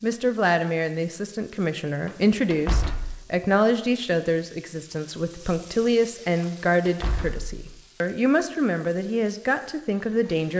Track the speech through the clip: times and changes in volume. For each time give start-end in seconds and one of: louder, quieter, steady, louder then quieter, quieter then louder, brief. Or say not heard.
0.0-10.5 steady.